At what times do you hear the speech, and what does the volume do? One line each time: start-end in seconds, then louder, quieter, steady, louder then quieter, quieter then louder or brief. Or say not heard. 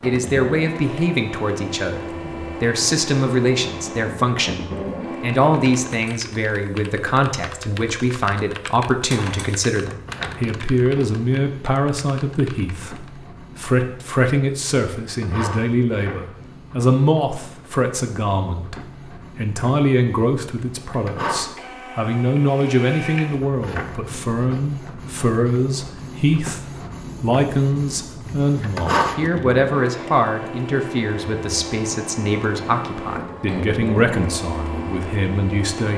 0.0-35.9 steady.